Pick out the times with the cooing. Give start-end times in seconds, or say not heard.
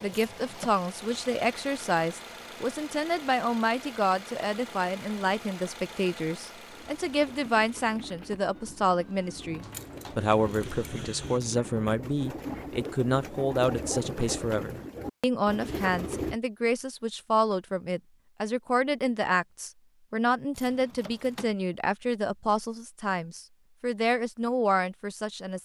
6.7-16.4.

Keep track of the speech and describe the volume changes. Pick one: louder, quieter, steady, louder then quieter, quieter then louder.
steady.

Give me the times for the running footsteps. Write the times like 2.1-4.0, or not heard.
not heard.